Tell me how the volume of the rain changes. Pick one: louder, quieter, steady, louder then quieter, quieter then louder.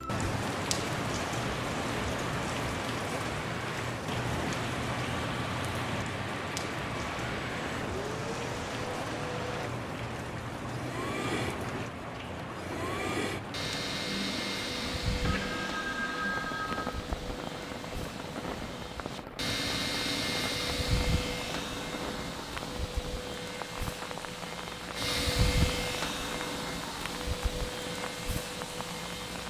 quieter.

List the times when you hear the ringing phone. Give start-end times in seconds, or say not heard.
15.2-16.9.